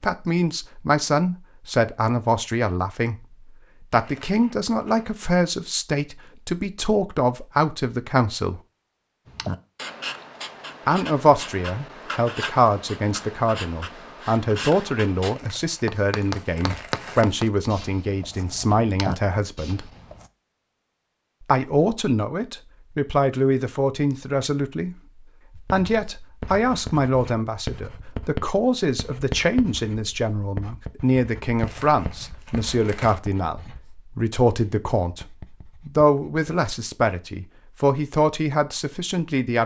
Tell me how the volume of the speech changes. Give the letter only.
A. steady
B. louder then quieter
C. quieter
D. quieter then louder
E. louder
A.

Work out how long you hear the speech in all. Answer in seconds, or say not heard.
35 s.